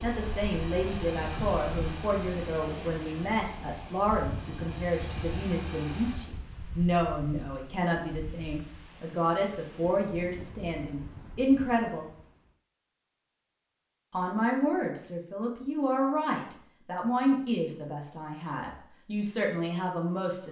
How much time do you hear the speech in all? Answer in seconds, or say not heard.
18 s.